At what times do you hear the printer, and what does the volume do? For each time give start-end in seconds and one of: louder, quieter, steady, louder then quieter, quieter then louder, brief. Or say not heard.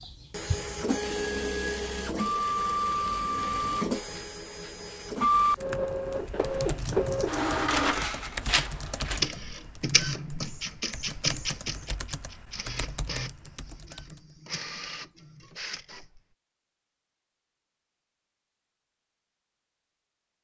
0.0-16.2 quieter.